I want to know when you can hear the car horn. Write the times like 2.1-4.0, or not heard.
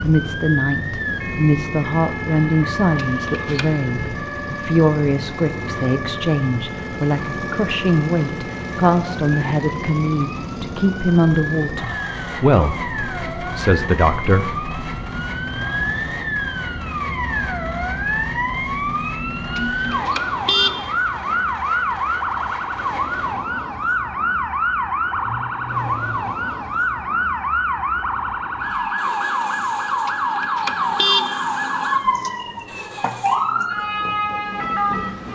3.0-3.6, 19.6-20.9, 30.1-31.4.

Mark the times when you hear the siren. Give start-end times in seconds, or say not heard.
0.0-35.3.